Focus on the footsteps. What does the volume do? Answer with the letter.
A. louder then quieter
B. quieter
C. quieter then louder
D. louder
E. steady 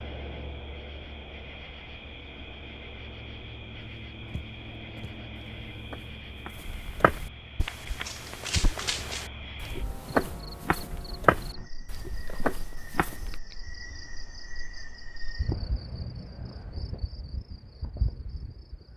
A.